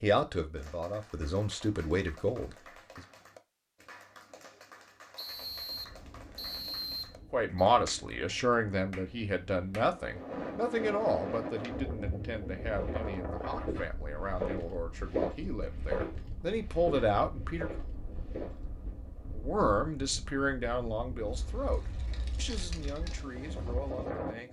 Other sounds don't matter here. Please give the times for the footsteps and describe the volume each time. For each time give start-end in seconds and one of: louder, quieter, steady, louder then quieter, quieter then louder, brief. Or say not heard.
12.8-18.6 louder then quieter.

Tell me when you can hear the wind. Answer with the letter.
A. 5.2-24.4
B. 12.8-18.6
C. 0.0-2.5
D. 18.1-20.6
A.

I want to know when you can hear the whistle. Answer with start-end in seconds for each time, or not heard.
5.2-7.7.